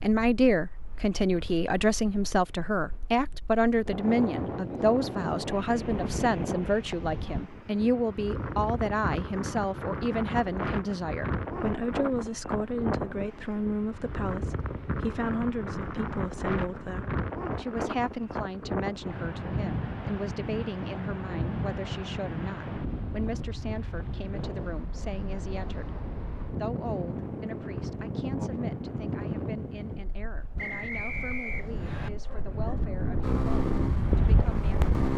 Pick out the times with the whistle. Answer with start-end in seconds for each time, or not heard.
30.6-32.1.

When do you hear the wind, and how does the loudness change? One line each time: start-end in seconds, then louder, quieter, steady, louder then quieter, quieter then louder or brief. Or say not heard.
0.0-35.1 steady.